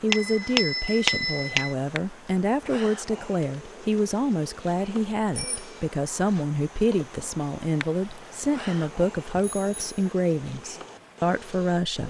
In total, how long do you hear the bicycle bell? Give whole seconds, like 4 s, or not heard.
3 s.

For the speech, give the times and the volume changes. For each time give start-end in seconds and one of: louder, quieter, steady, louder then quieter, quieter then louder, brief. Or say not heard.
0.0-12.0 steady.